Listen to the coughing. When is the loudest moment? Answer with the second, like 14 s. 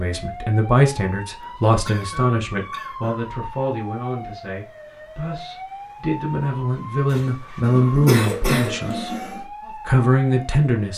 8 s.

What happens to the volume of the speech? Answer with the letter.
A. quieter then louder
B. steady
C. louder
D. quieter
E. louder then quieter
A.